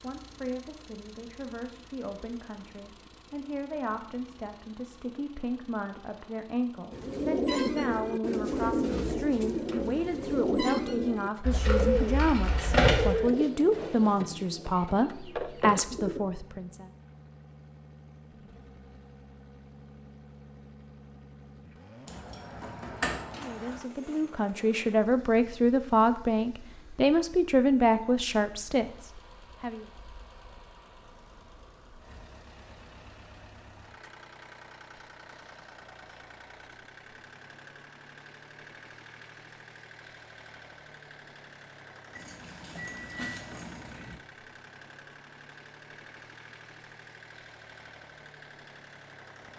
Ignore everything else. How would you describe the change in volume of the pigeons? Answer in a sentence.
The loudness of the pigeons goes down.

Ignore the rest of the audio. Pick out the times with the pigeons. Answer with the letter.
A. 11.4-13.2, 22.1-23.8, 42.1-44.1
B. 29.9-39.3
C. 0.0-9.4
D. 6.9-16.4
D.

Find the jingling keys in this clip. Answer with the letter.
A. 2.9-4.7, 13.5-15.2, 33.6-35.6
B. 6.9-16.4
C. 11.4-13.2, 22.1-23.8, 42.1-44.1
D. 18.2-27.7
C.